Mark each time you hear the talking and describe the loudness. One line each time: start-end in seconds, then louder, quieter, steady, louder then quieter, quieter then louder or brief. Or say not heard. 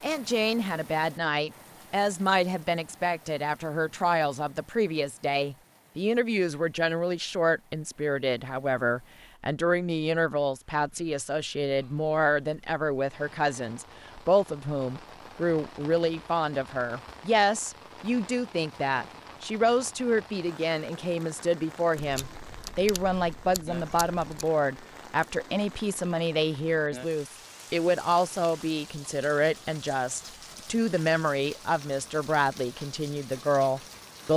0.0-34.3 steady.